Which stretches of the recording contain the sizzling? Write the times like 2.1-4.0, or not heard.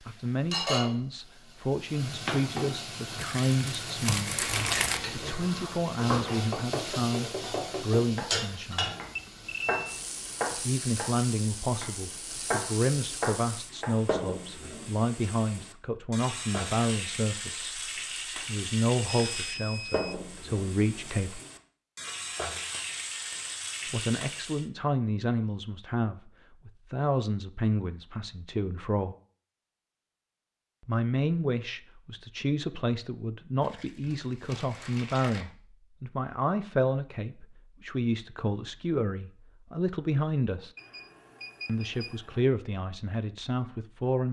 0.0-24.6.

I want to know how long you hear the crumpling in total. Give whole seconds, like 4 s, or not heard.
4 s.